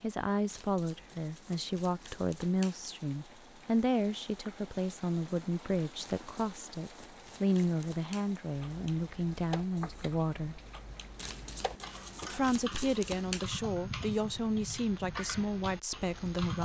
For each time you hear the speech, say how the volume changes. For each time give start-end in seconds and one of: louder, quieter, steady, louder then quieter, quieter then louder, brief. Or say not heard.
0.0-10.6 steady
12.3-16.6 steady.